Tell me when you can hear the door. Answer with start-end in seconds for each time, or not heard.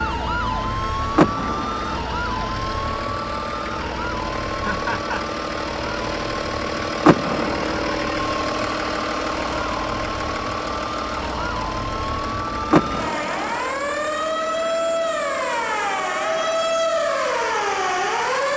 1.1-2.0, 7.0-7.8, 12.7-13.6.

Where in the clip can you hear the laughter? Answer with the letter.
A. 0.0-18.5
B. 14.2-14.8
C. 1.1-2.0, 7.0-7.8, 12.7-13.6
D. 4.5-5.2
D.